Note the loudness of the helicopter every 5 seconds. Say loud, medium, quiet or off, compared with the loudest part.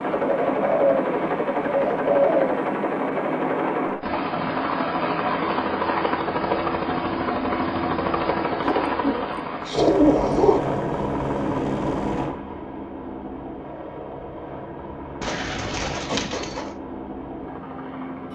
loud, loud, loud, medium.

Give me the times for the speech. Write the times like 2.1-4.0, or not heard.
not heard.